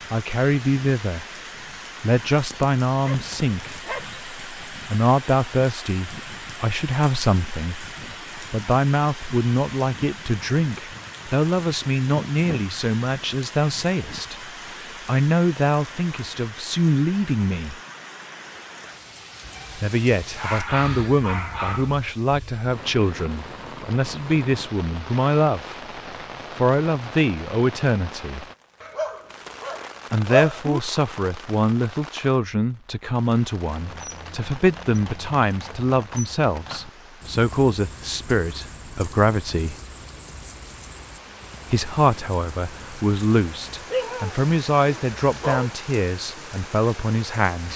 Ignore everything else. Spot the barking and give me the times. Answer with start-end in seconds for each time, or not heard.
2.9-4.2, 19.4-21.9, 28.8-30.8, 43.9-45.7.